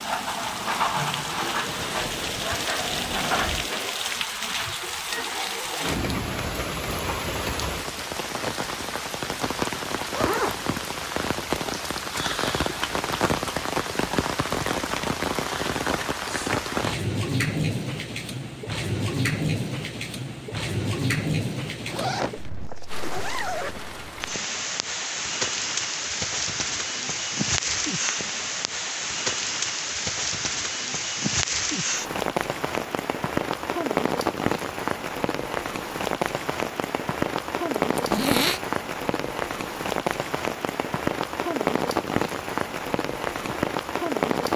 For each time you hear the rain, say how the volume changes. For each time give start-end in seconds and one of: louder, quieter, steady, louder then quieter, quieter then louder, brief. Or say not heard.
0.0-44.5 steady.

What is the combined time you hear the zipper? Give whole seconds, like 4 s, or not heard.
3 s.